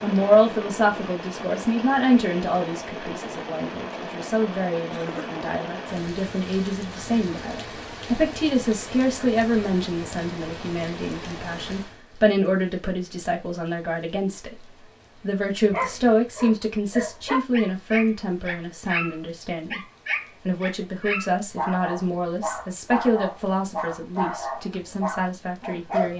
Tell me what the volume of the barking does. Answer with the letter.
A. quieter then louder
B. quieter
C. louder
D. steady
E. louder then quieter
D.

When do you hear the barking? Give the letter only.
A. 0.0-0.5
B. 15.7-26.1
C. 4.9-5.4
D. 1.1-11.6
B.